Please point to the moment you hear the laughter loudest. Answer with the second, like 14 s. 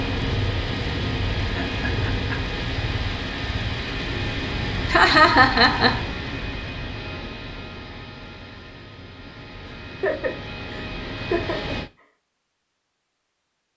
5 s.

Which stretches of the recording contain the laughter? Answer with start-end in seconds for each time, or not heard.
1.4-2.5, 4.8-6.0, 9.7-11.8.